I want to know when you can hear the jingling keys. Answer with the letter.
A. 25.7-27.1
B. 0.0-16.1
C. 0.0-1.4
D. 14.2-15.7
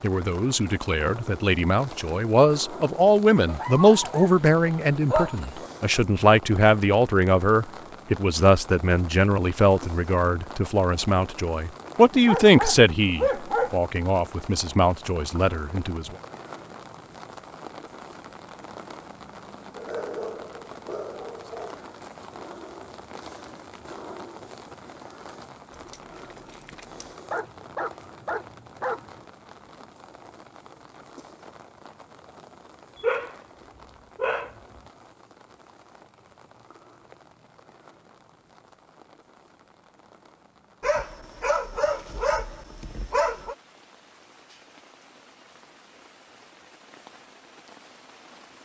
A.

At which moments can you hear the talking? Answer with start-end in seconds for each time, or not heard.
0.0-16.1.